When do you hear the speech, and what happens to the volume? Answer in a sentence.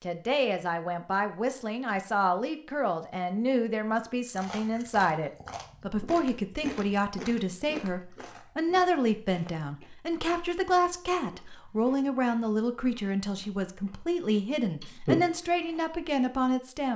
You can hear the speech from 0.0 to 16.9 s, at a steady volume.